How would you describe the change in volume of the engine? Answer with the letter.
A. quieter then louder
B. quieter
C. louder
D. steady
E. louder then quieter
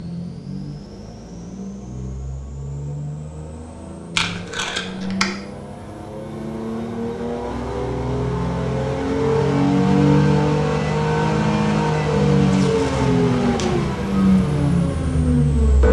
C.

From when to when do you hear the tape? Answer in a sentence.
The tape can be heard from 4.2 to 5.3 s and from 12.4 to 13.7 s.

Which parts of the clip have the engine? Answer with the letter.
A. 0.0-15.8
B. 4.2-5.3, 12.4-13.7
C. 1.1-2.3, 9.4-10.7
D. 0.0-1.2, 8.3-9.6
A.